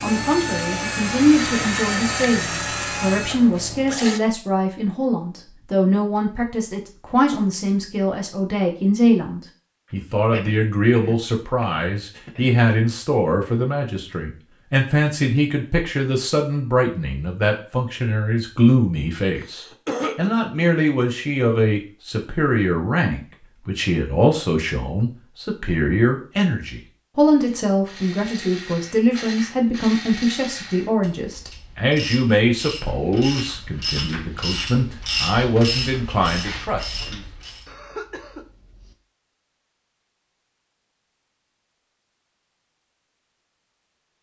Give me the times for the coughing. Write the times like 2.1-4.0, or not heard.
10.3-12.6, 19.4-20.3, 37.6-39.0.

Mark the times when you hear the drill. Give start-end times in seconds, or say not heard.
0.0-4.2.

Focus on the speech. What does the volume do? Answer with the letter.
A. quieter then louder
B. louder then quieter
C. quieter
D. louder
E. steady
E.